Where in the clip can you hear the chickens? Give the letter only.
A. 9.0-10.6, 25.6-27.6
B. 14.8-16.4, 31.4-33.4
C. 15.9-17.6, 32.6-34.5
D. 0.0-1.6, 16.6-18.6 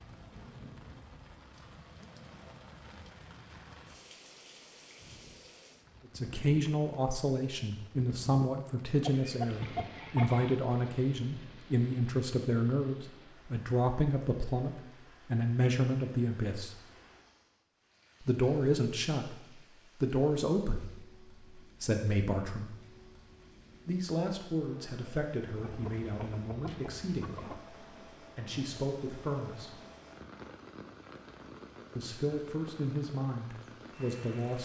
A.